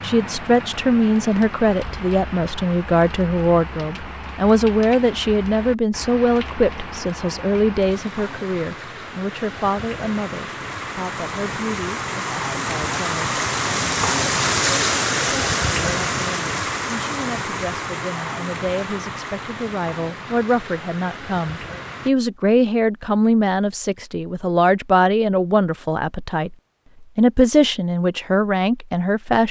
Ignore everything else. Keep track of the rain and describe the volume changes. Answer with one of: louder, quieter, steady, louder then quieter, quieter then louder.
louder then quieter.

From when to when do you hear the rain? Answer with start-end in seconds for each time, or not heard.
0.0-22.1.